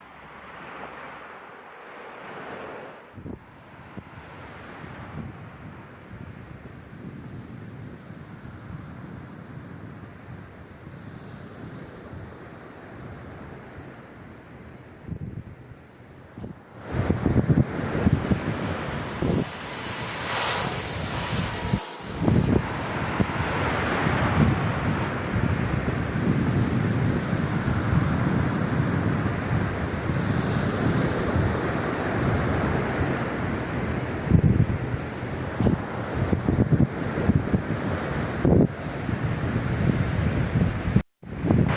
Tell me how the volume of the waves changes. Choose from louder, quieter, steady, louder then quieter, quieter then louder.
louder.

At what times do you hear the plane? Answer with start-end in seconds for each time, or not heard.
17.9-25.1.